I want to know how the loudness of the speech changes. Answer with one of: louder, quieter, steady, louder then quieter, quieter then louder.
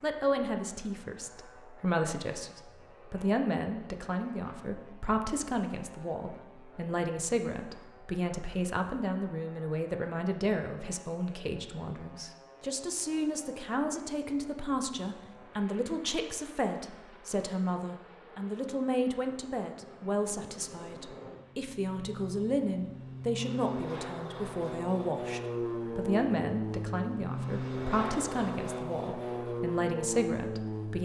steady.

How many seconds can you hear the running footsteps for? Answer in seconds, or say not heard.
not heard.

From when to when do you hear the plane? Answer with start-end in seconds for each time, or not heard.
0.0-30.9.